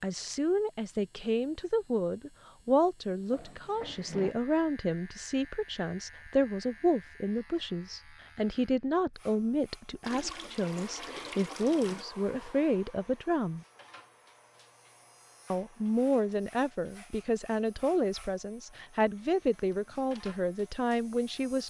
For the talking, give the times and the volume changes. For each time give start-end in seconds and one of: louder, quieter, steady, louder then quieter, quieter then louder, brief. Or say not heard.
0.0-13.7 steady
15.5-21.6 steady.